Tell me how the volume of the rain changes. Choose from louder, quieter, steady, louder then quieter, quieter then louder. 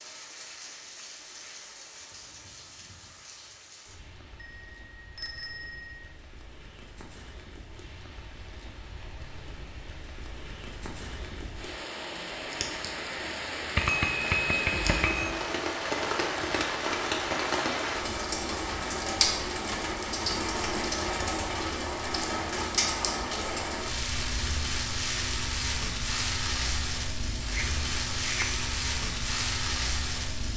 louder.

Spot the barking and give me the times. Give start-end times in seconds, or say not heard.
not heard.